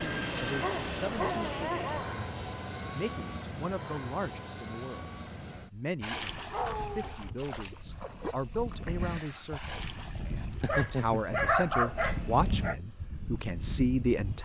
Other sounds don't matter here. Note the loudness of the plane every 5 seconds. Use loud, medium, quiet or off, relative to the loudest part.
loud, medium, loud.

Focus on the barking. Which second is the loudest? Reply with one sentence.
The loudest moment of the barking is at 12 seconds.